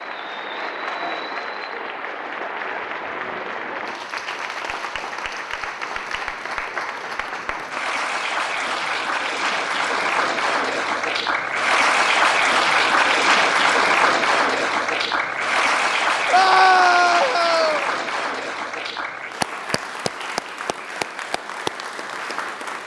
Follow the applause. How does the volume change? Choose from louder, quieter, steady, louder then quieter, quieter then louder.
louder then quieter.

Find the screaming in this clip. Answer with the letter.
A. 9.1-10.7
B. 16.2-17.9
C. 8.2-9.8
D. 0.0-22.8
B.